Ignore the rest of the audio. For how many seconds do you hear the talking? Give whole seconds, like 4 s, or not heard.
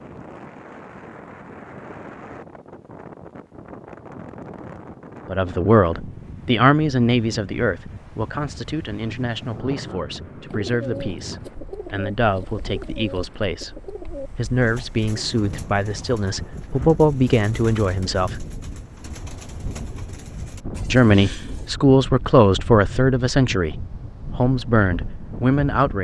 17 s.